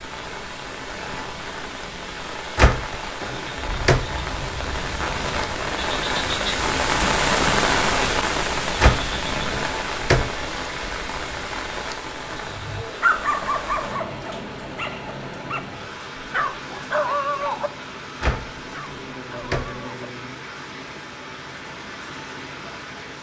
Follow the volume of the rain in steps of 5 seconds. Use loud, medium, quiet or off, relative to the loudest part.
medium, loud, medium, quiet, quiet.